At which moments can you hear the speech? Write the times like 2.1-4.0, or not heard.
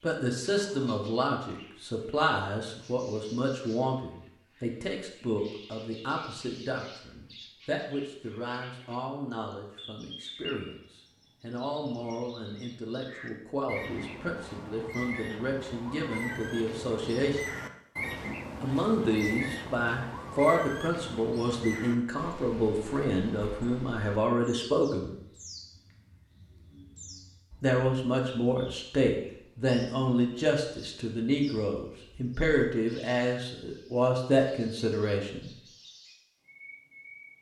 0.0-17.4, 18.6-25.1, 27.6-35.5.